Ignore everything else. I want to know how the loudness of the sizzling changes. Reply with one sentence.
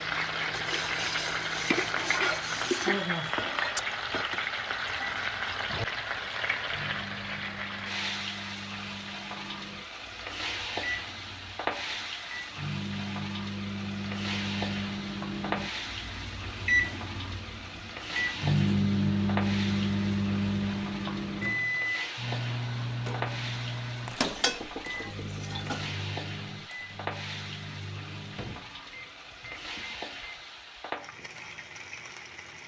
The loudness of the sizzling goes down.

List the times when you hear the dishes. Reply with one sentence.
You can hear the dishes from 0.5 to 3.5 s and from 24.2 to 25.9 s.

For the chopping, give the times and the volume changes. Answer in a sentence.
You can't hear the chopping here.